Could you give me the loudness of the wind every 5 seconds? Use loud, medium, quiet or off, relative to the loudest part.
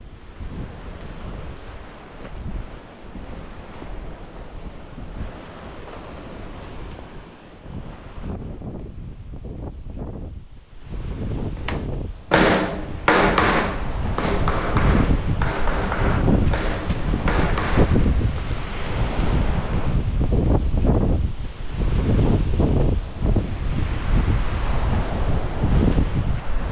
quiet, quiet, medium, loud, loud, loud.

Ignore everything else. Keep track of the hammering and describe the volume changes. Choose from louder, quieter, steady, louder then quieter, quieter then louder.
quieter.